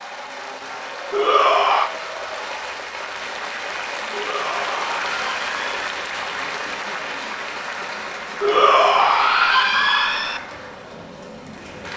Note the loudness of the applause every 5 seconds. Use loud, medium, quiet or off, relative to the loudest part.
loud, loud, medium.